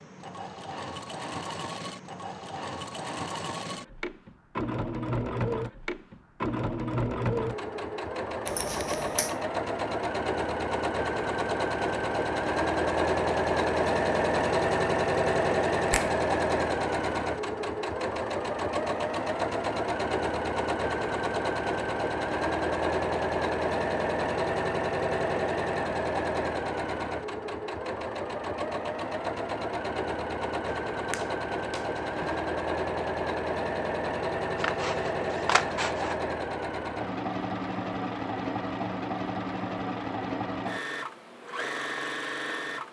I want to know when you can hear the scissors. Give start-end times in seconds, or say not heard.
34.5-36.1.